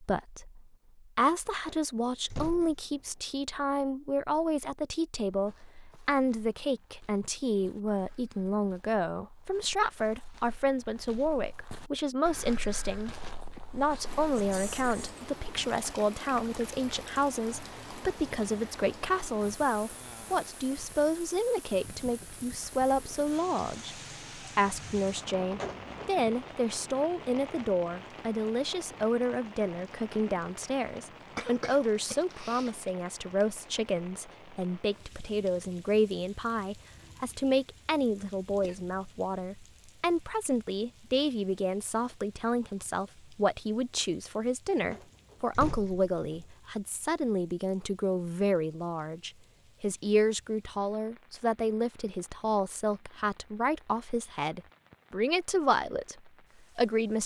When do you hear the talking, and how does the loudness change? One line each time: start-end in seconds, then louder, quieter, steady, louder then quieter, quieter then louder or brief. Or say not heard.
0.0-57.2 steady.